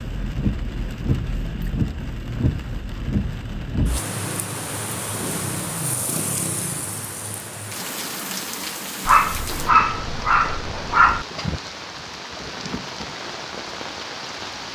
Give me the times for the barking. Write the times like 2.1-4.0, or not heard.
9.1-11.2.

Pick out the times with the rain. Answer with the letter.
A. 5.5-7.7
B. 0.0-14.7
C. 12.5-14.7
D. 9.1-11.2
B.